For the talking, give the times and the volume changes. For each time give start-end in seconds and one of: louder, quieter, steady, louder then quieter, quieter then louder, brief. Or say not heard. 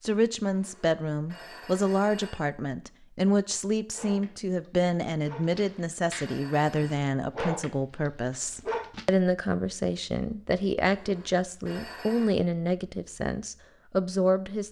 0.0-14.6 steady.